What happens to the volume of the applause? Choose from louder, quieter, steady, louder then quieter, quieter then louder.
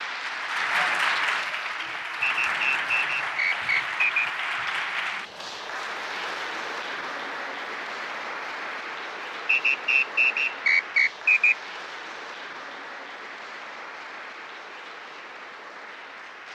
quieter.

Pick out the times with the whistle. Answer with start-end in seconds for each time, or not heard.
2.2-4.2, 9.4-11.6.